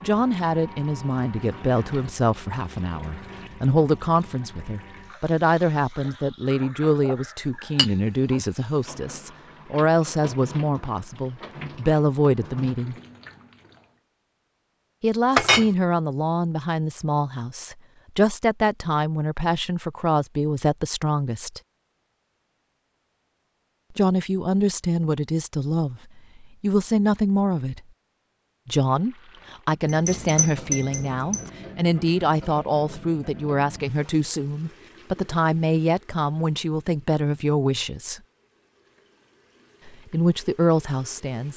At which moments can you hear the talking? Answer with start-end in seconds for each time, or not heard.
0.0-12.9, 15.0-21.6, 23.9-27.8, 28.6-38.2, 39.9-41.5.